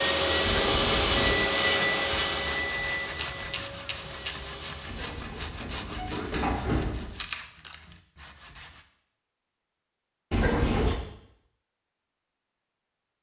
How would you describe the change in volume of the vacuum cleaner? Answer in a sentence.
The loudness of the vacuum cleaner goes down.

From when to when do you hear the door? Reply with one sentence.
You can hear the door from 0.4 to 1.4 s, from 4.8 to 7.2 s and from 10.3 to 11.0 s.